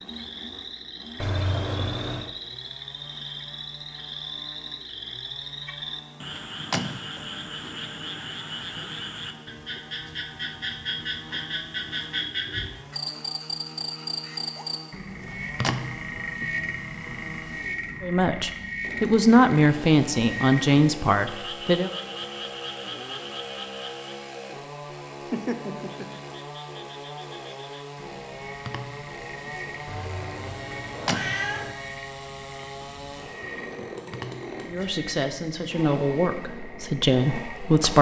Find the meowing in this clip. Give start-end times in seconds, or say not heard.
1.1-2.3, 29.9-31.8.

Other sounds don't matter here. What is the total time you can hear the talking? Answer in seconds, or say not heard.
7 s.